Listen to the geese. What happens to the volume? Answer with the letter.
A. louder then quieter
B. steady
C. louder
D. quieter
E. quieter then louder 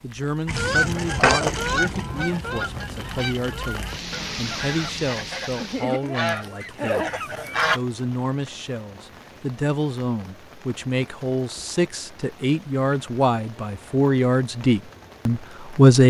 E.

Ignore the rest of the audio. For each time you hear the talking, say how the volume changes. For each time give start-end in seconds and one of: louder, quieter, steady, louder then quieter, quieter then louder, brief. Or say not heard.
0.0-16.0 louder.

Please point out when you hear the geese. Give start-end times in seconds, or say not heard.
0.5-7.8.